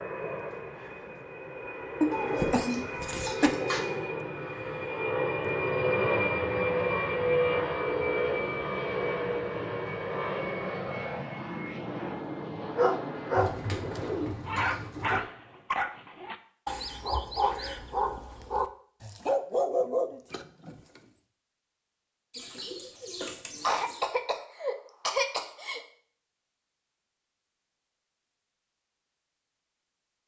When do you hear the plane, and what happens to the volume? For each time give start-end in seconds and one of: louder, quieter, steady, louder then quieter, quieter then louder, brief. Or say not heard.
0.0-14.7 louder then quieter.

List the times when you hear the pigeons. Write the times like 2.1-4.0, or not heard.
2.1-3.9, 13.3-15.2, 22.3-24.1.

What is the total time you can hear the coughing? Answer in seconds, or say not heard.
4 s.